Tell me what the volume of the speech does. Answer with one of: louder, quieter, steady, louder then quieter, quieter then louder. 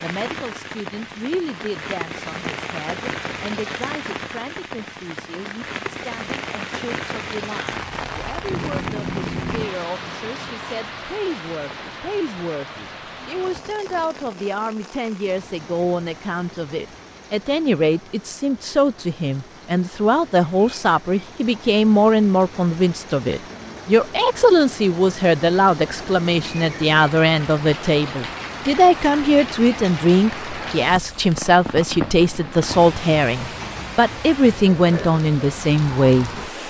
louder.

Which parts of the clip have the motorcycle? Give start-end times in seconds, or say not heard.
8.4-10.7.